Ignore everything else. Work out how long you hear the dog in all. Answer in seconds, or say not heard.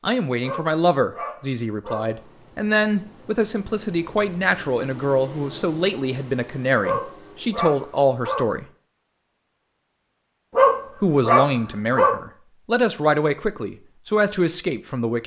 5 s.